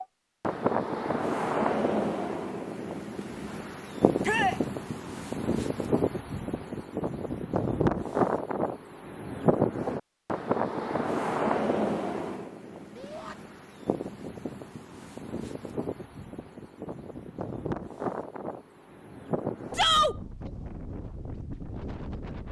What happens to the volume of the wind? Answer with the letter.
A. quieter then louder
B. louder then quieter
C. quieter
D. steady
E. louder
C.